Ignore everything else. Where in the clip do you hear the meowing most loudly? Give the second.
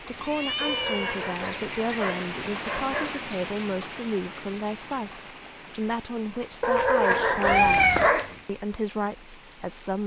8 s.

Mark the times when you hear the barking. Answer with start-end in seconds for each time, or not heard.
0.6-3.2, 6.6-8.4.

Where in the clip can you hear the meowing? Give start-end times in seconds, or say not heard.
0.1-2.0, 7.5-8.1.